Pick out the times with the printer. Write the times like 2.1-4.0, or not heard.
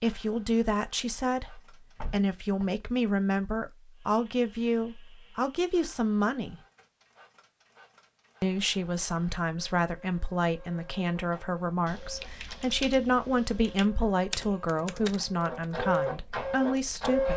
0.0-2.2, 3.9-17.3.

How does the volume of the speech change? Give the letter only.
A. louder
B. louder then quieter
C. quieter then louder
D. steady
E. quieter
D.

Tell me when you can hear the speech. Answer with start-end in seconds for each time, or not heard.
0.0-6.6, 8.4-17.3.